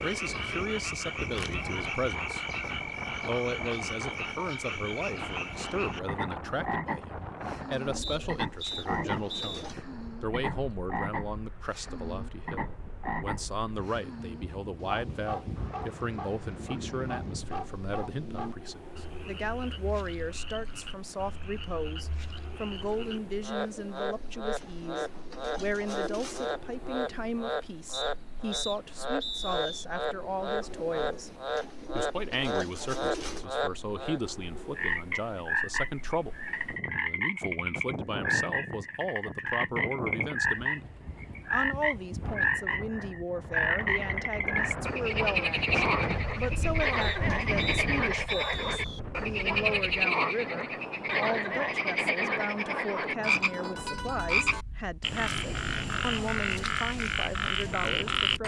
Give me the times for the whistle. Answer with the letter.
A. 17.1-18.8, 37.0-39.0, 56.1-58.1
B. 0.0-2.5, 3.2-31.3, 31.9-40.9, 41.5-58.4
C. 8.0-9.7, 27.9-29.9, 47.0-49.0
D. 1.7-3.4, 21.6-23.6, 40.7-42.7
C.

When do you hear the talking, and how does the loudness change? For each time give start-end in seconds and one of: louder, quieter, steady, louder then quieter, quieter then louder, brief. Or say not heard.
0.0-2.5 brief
3.2-31.3 steady
31.9-40.9 steady
41.5-58.4 steady.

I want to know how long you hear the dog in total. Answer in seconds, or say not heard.
not heard.